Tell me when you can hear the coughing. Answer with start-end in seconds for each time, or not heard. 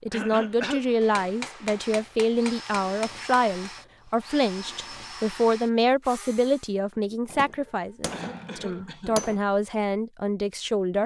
0.1-0.8, 7.5-9.2.